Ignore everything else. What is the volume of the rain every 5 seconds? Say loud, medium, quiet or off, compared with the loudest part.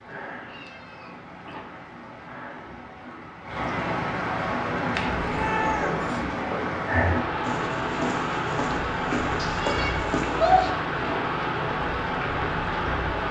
medium, loud, loud.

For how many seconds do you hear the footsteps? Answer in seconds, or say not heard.
6 s.